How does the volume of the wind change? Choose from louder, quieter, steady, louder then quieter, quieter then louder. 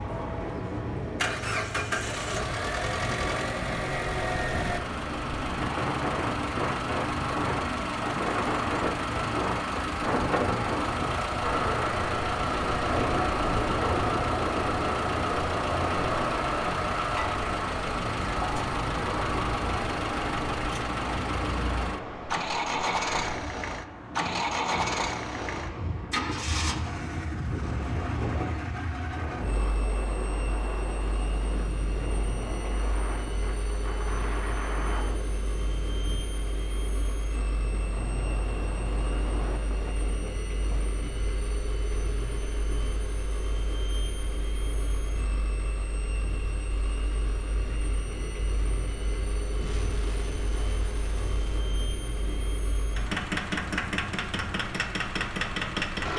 quieter.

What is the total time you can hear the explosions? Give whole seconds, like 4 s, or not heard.
2 s.